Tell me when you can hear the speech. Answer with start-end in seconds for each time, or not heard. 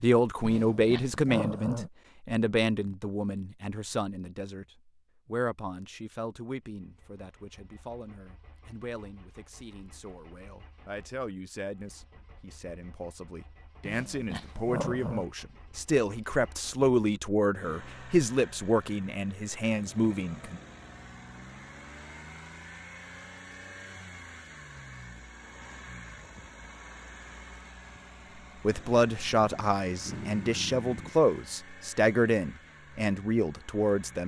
0.0-4.7, 5.2-20.6, 28.6-34.2.